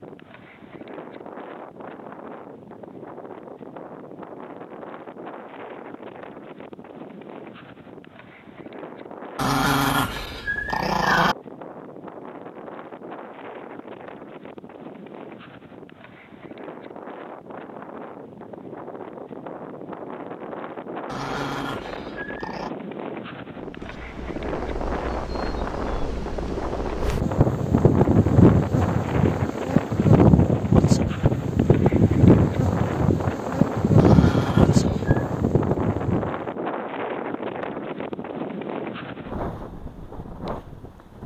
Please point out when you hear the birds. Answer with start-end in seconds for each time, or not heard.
not heard.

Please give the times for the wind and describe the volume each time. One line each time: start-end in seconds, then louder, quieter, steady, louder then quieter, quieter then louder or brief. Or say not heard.
0.0-41.2 louder.